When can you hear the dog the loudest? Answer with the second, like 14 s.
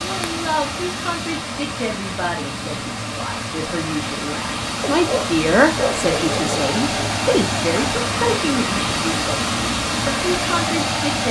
6 s.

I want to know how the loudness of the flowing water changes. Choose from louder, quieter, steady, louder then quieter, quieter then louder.
louder.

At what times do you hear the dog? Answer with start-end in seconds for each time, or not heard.
4.8-7.1.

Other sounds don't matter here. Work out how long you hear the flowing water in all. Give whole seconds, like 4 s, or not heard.
11 s.